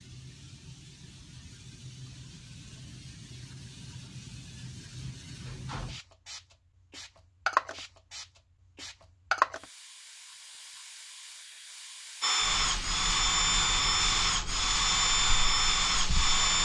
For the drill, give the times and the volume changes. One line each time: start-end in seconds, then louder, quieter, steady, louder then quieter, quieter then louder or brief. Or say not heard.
12.2-16.5 steady.